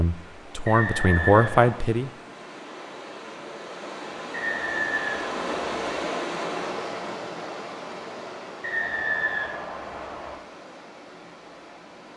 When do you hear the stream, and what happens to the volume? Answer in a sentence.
You can hear the stream from 0.0 to 12.1 s, getting louder then quieter.